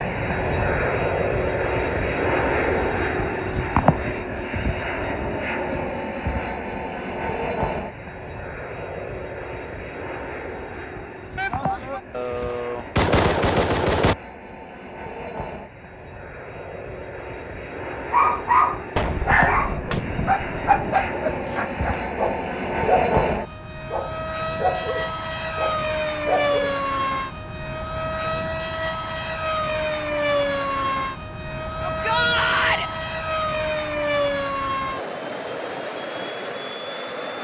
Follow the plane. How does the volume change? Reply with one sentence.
The volume of the plane goes down, then up.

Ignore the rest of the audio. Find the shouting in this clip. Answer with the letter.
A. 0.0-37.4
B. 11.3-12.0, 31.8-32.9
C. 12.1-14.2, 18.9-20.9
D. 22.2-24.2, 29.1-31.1
B.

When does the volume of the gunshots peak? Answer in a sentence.
The volume of the gunshots peaks at 13 seconds.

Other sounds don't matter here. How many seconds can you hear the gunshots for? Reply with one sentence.
You can hear the gunshots for 4 seconds altogether.